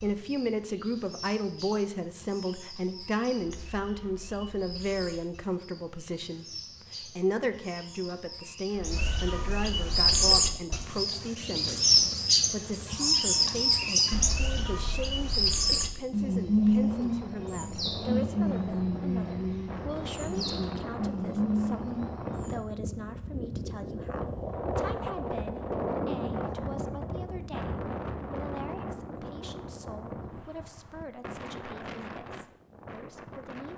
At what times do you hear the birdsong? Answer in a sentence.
The birdsong can be heard from 0.0 to 22.6 s.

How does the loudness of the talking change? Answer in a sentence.
The volume of the talking goes down.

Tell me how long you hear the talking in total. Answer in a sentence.
You can hear the talking for 34 seconds altogether.